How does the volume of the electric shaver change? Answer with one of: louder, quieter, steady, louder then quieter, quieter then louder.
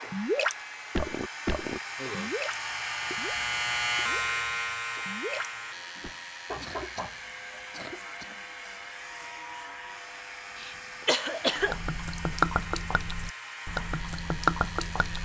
louder then quieter.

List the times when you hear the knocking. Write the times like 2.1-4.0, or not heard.
6.5-7.7.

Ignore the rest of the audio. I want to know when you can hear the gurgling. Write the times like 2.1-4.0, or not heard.
0.0-4.2, 5.0-6.1, 11.6-15.2.